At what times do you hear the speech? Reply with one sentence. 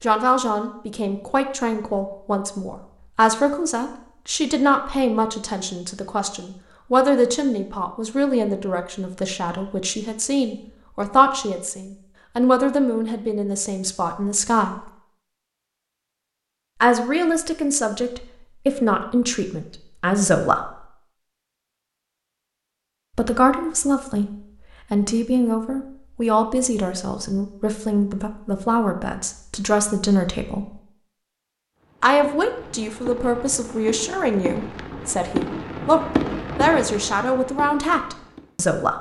You can hear the speech from 0.0 to 14.9 s, from 16.8 to 20.9 s, from 23.1 to 30.8 s and from 32.0 to 38.9 s.